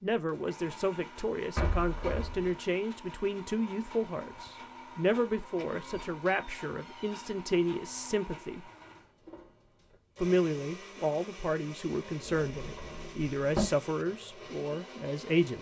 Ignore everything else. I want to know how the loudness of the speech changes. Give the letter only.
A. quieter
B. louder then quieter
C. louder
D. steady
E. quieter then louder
D.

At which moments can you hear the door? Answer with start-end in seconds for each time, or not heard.
1.6-2.6, 5.5-7.3, 12.2-13.7.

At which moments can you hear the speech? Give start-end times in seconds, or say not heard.
0.0-8.7, 10.2-15.5.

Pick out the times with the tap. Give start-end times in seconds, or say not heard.
not heard.